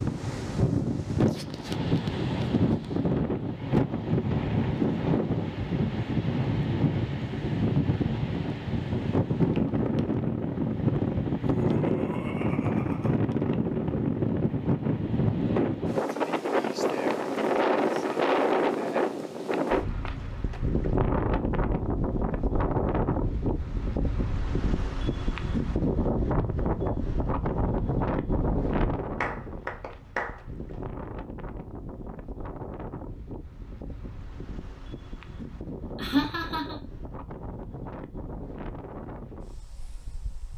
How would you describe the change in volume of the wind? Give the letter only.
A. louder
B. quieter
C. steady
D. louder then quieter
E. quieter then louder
B.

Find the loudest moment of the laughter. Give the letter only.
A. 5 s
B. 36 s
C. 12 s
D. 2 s
B.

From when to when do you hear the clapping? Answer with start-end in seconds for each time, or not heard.
29.2-30.8.